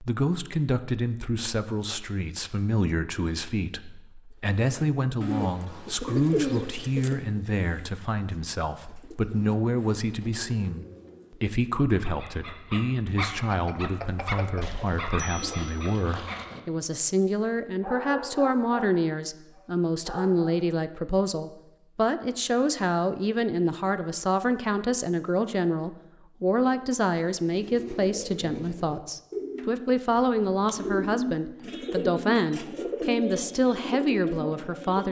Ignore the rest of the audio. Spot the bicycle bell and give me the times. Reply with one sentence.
You can hear the bicycle bell from 13.5 to 15.9 s.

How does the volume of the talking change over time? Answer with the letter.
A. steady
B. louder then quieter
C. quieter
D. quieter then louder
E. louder
A.